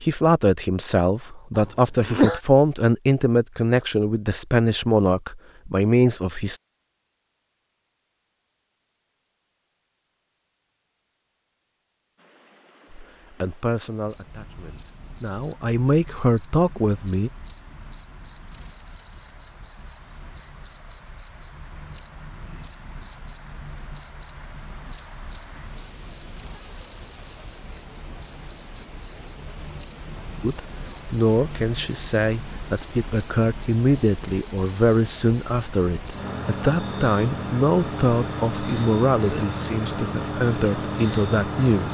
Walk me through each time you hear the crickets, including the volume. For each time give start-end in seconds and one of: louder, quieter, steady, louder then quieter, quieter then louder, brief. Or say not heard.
14.0-41.8 louder.